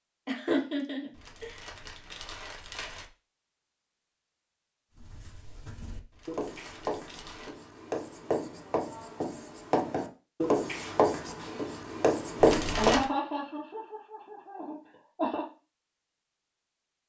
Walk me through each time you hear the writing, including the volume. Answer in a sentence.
The writing can be heard from 4.9 to 13.0 s, getting louder.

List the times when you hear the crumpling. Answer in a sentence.
The crumpling can be heard from 1.1 to 3.0 s, from 6.1 to 7.5 s and from 12.3 to 13.1 s.